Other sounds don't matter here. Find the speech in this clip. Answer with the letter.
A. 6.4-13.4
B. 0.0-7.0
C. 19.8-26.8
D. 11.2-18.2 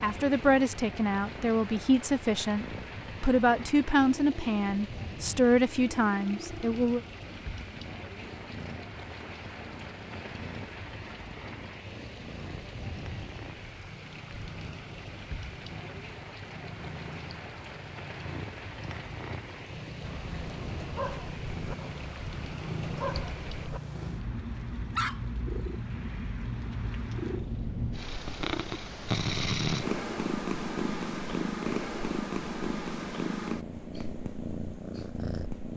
B.